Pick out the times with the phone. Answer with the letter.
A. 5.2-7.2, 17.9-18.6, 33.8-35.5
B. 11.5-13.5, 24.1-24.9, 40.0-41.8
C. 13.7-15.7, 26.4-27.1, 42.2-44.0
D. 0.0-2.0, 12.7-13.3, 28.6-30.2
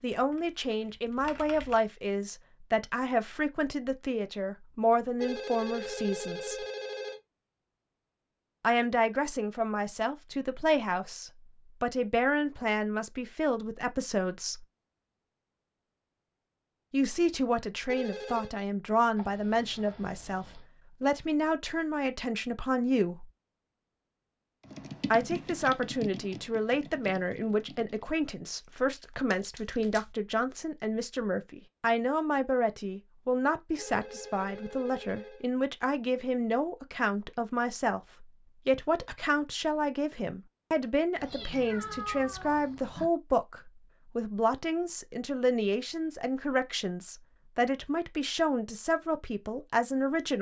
A.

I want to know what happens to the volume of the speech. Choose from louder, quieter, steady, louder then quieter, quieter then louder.
steady.